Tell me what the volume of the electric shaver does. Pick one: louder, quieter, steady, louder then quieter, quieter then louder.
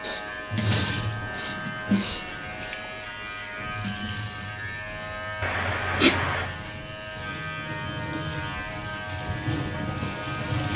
steady.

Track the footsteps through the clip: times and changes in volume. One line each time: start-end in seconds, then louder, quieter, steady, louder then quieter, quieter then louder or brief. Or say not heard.
not heard.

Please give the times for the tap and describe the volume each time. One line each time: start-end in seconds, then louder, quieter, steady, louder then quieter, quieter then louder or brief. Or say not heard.
0.0-10.7 quieter then louder.